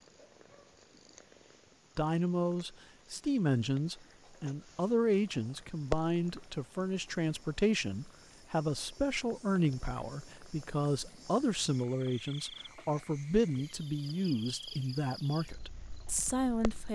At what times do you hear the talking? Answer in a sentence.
The talking can be heard from 1.9 to 16.9 s.